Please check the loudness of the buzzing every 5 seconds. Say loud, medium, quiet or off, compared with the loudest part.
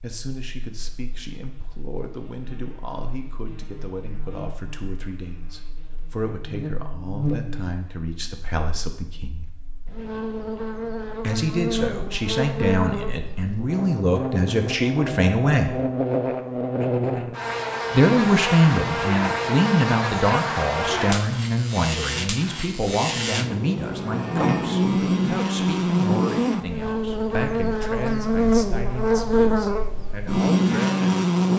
quiet, quiet, medium, medium, medium, loud, loud.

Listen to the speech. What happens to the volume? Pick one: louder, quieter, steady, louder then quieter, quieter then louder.
louder then quieter.